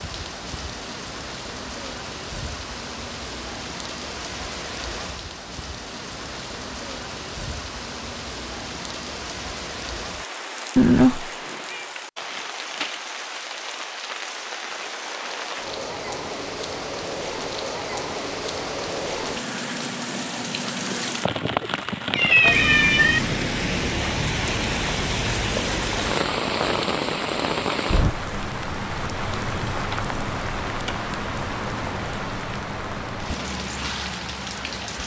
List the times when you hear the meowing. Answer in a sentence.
The meowing can be heard from 10.8 to 11.8 s and from 22.1 to 23.2 s.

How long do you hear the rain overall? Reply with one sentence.
The rain can be heard for 35 seconds in total.